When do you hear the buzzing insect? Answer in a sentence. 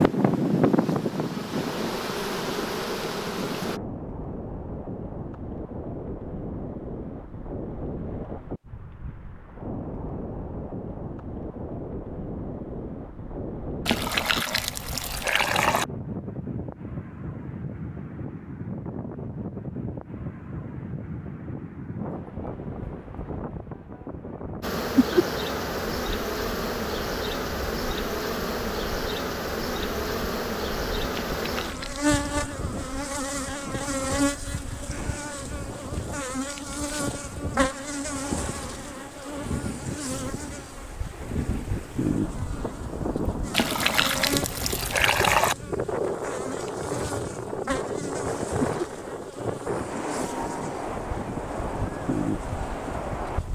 The buzzing insect can be heard from 0.0 to 3.8 s and from 24.6 to 53.5 s.